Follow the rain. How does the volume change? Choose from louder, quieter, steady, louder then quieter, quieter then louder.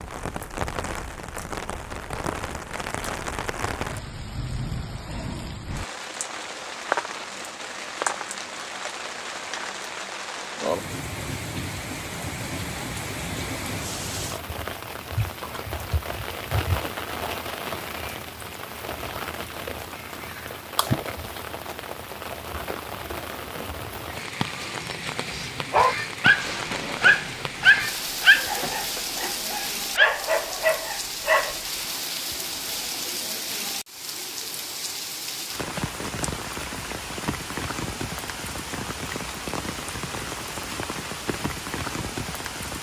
steady.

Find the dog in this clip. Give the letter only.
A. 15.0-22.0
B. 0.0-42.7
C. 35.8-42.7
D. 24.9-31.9
D.